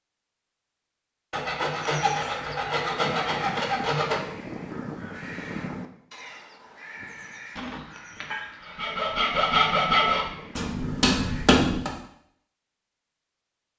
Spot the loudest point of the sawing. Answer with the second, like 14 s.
10 s.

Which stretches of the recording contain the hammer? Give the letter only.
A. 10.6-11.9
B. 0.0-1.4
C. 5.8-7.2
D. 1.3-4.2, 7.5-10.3
A.